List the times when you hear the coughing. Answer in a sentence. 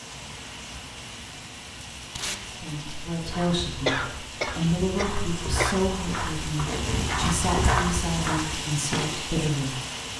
The coughing can be heard from 3.9 to 5.8 s.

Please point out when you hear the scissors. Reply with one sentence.
The scissors can't be heard in this clip.